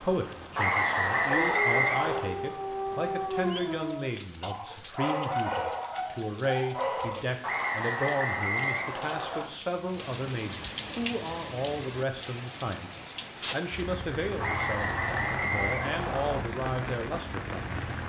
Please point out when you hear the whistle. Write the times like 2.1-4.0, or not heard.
0.6-2.2, 7.4-9.4, 14.3-16.4.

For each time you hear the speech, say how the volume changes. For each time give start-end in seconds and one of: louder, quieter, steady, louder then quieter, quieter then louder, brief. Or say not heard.
0.0-17.6 steady.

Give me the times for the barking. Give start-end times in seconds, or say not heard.
1.3-7.2.